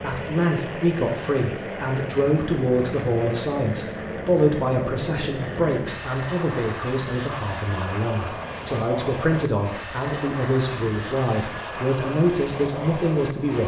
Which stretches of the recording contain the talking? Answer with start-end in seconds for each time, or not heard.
0.0-13.6.